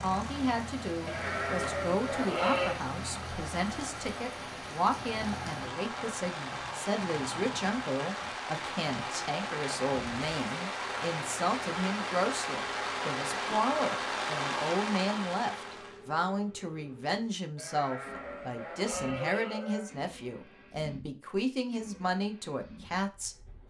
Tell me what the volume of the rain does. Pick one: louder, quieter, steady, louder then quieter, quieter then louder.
louder.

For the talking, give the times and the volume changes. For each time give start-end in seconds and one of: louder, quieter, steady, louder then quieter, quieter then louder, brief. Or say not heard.
0.0-23.4 steady.